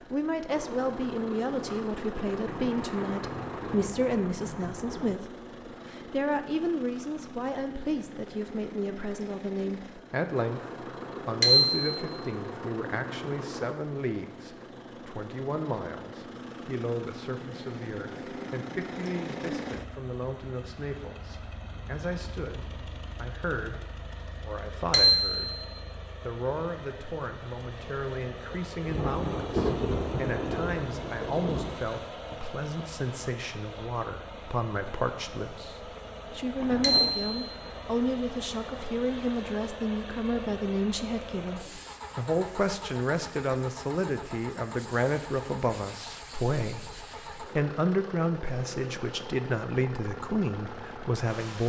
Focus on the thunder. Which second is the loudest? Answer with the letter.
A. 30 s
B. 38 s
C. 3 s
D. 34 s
A.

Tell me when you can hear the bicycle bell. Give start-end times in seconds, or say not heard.
11.4-12.0, 24.9-25.6, 36.8-37.3.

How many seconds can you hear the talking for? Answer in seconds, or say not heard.
51 s.